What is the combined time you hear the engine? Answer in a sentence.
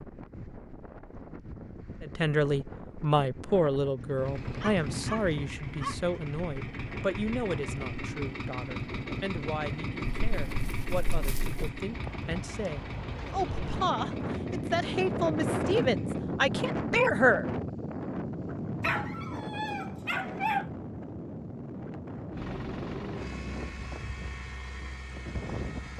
You can hear the engine for 16 seconds altogether.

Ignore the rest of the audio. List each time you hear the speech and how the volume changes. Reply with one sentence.
The speech can be heard from 2.0 to 17.4 s, getting quieter then louder.